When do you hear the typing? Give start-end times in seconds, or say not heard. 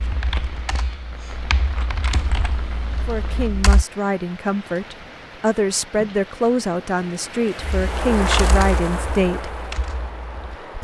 0.0-3.9, 7.8-10.6.